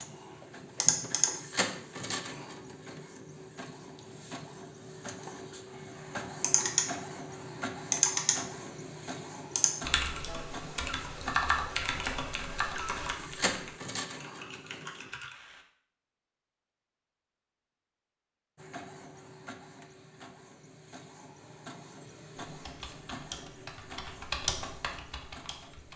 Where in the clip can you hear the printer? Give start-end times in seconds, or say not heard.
0.0-15.1, 18.6-25.9.